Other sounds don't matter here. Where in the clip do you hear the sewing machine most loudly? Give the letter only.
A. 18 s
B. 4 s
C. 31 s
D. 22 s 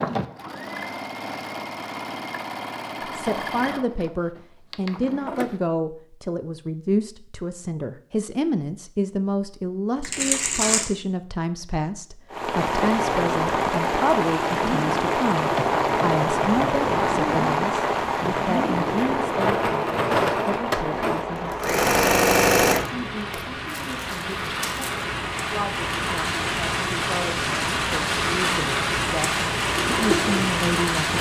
D.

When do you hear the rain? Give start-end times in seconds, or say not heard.
12.3-31.1.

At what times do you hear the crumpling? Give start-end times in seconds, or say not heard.
10.0-10.8, 23.3-25.1.